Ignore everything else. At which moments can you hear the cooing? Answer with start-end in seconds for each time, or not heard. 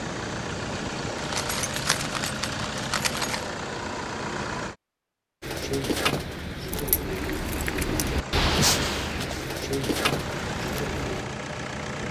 5.4-11.2.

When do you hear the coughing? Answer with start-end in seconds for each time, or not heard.
not heard.